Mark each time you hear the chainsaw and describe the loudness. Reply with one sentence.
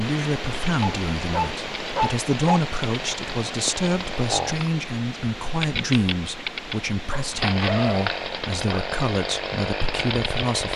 The chainsaw can be heard from 0.0 to 10.7 s, getting louder.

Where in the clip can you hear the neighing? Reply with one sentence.
The neighing can't be heard in this clip.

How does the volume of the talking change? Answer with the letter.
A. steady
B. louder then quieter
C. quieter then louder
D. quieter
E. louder
A.